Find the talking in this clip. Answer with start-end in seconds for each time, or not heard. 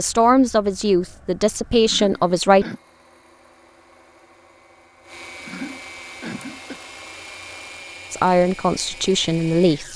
0.0-2.6, 8.1-9.9.